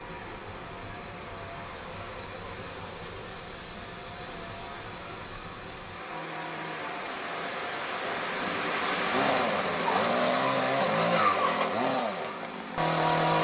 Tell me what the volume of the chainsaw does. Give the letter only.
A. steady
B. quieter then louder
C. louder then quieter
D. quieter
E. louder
E.